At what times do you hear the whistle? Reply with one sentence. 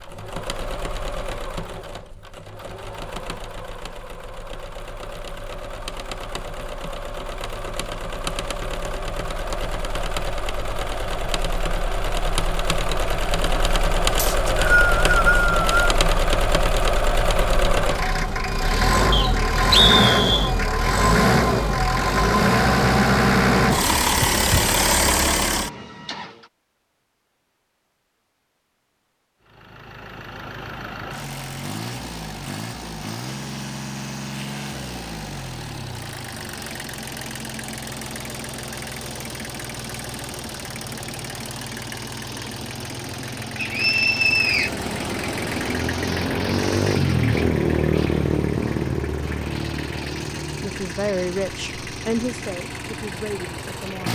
You can hear the whistle from 14.2 to 15.7 s, from 19.1 to 20.5 s and from 43.5 to 44.7 s.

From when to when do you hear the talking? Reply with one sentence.
The talking can be heard from 50.6 to 54.1 s.